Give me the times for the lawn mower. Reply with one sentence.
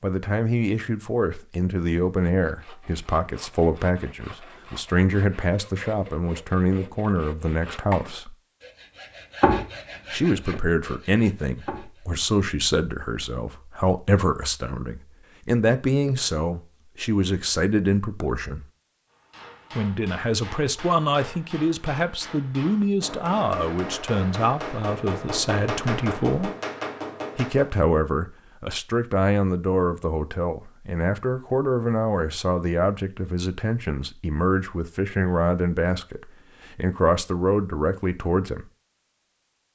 The lawn mower can't be heard in this clip.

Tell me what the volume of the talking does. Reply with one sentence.
The loudness of the talking stays about the same.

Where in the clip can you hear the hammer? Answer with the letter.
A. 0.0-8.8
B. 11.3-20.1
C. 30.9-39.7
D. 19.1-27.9
D.